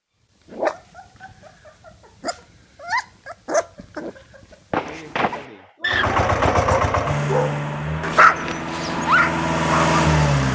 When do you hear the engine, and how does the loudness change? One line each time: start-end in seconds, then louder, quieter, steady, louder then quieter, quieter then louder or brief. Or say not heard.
5.8-10.5 quieter then louder.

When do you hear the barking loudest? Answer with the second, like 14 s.
8 s.